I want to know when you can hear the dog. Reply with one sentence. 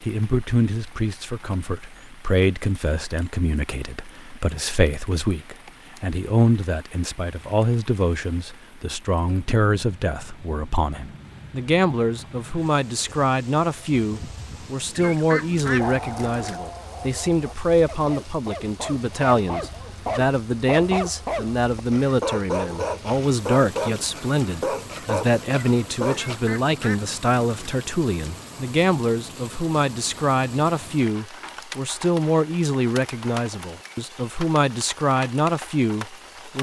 You can hear the dog from 15.8 to 26.4 s.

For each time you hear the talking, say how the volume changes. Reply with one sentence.
The talking can be heard from 0.0 to 36.5 s, at a steady volume.